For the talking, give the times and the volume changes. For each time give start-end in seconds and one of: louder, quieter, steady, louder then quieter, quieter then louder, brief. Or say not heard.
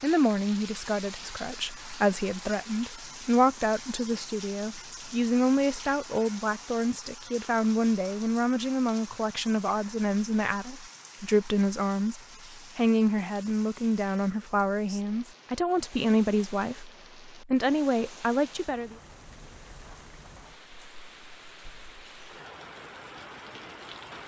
0.0-18.9 steady.